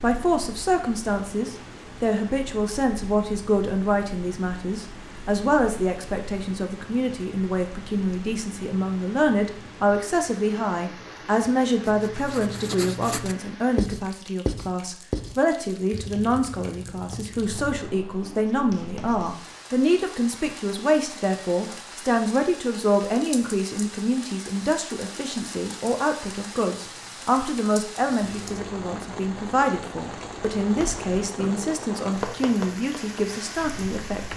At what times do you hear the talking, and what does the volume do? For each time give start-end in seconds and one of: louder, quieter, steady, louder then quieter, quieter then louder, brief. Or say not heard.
0.0-34.3 steady.